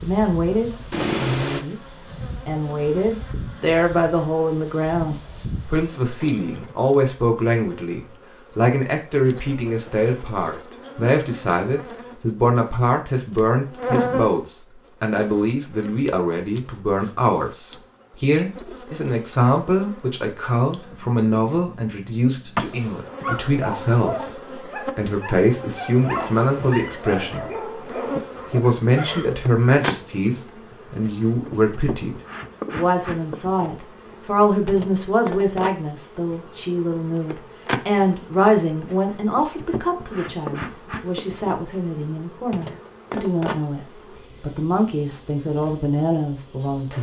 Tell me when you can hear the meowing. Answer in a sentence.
The meowing can be heard from 0.9 to 1.6 s and from 26.0 to 27.0 s.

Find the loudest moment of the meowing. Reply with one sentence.
The loudest moment of the meowing is at 1 second.